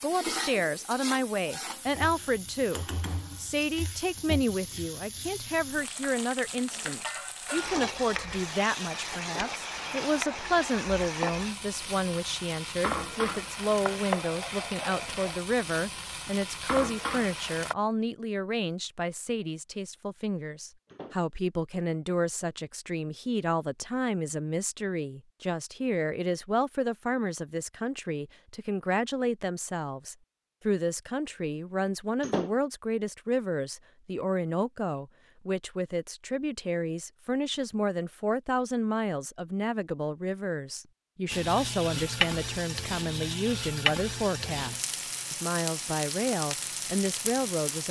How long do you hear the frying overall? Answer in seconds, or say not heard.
24 s.